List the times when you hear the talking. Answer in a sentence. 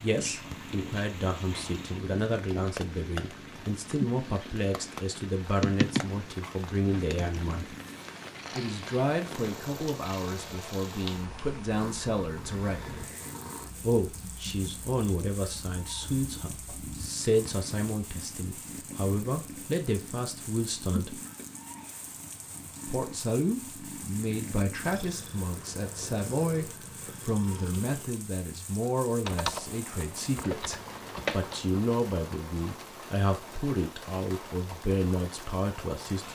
You can hear the talking from 0.0 to 7.8 s, from 8.6 to 13.1 s, from 13.8 to 21.2 s and from 22.9 to 36.3 s.